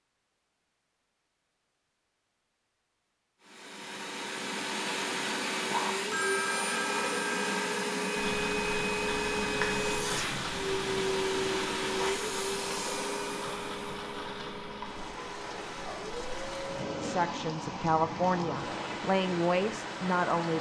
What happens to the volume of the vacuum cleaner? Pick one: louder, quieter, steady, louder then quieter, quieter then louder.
quieter.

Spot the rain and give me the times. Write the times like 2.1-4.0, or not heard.
8.2-20.5.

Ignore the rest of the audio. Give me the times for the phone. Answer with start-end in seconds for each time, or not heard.
6.1-7.6.